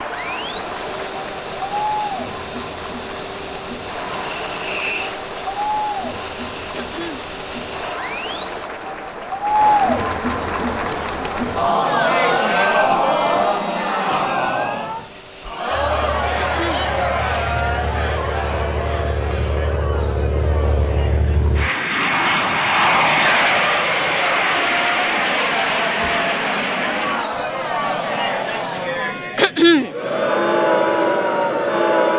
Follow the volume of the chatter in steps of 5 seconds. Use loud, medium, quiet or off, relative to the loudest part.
medium, medium, loud, medium, medium, medium, loud.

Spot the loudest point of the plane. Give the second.
23 s.